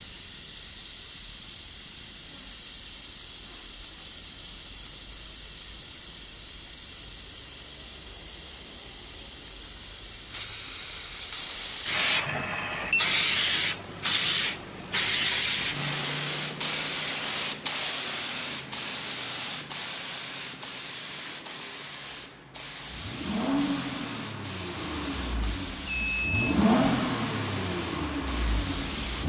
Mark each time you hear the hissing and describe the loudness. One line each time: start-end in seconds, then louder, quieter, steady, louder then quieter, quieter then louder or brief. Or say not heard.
0.0-29.2 louder then quieter.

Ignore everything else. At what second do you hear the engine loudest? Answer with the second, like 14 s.
27 s.